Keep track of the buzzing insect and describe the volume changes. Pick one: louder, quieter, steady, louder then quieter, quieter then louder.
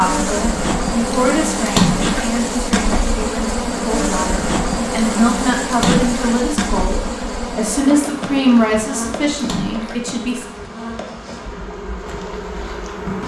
quieter.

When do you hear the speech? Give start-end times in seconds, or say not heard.
0.0-10.4.